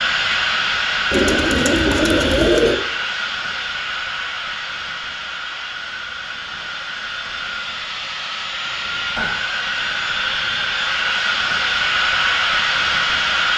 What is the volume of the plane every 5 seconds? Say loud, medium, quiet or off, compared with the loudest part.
loud, medium, loud.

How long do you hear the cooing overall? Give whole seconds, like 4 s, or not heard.
2 s.